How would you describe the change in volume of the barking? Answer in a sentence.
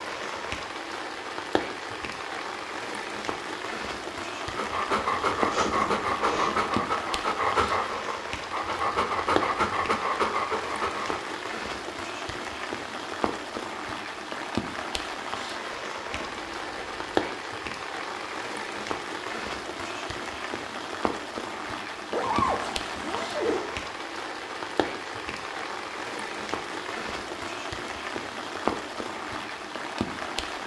The volume of the barking stays about the same.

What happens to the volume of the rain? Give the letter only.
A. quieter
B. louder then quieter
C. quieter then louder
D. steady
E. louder
D.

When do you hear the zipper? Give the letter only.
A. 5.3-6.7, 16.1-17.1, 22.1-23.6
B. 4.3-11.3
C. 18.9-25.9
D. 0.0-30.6
A.